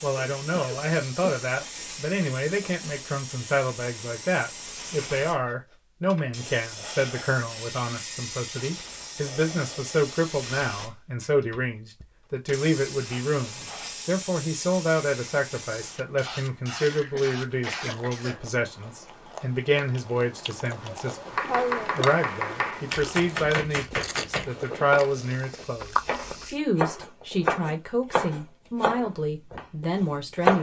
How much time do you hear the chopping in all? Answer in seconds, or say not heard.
9 s.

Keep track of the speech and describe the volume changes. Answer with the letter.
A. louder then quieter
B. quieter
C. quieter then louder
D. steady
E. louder
D.